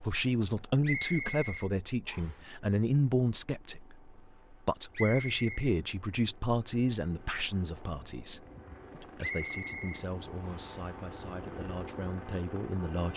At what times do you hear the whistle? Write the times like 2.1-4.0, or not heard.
0.8-2.4, 4.9-5.8, 9.2-10.8.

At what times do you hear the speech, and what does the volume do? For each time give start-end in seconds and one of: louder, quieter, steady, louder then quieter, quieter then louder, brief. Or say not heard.
0.0-13.1 quieter.